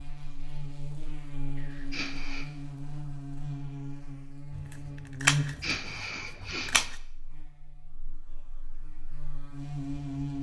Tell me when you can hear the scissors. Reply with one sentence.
The scissors can be heard from 4.5 to 7.0 s.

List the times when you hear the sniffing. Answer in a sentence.
The sniffing can be heard from 1.6 to 2.5 s and from 5.4 to 6.9 s.